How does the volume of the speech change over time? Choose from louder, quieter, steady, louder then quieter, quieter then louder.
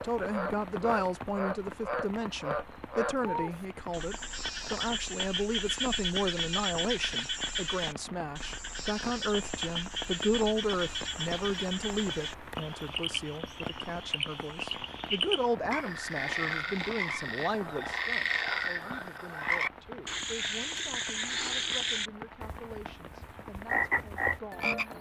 quieter.